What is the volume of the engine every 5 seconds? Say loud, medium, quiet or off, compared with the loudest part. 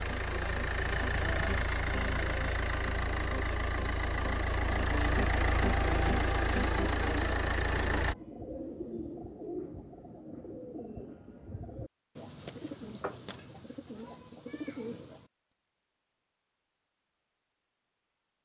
loud, loud, off, off.